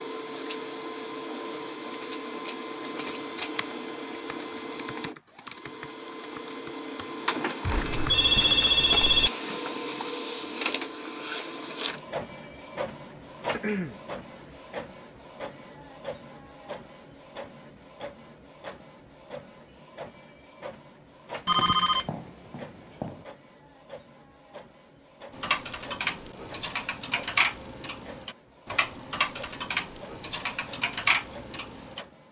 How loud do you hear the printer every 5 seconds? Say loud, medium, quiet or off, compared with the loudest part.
loud, loud, loud, medium, quiet, quiet, quiet.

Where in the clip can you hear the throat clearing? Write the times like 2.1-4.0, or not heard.
13.5-14.0.